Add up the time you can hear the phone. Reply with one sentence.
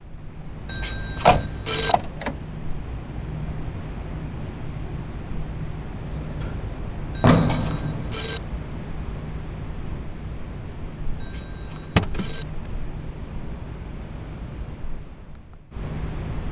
The phone can be heard for 4 seconds in total.